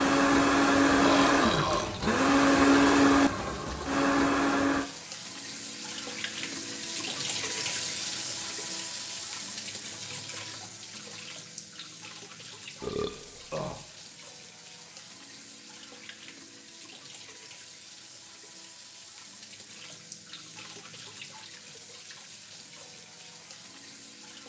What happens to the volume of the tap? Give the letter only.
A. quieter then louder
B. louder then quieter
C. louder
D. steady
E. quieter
E.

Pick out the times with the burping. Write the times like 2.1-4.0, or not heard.
0.9-2.0, 12.8-13.8.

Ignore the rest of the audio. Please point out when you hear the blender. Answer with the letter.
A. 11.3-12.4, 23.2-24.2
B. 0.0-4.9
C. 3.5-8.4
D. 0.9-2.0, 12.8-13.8
B.